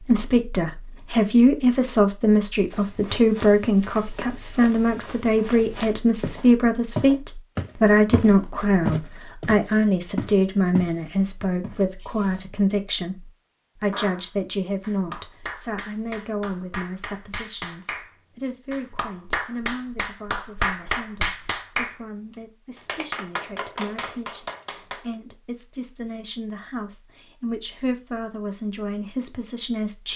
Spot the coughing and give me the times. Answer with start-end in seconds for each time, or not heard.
not heard.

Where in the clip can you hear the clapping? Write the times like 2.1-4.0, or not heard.
13.9-25.1.